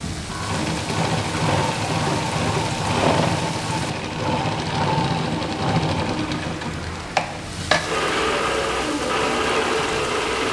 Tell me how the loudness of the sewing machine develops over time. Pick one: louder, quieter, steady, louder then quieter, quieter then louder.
steady.